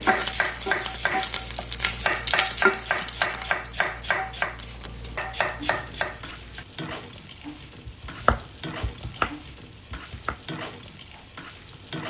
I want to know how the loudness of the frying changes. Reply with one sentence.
The loudness of the frying goes down.